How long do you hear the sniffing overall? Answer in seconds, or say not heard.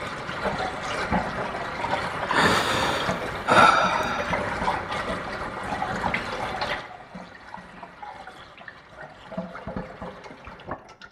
2 s.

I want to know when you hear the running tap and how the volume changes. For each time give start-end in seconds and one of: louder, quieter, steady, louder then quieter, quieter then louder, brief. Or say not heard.
0.0-11.0 quieter.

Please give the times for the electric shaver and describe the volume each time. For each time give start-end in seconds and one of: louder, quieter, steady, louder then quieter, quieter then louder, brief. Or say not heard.
not heard.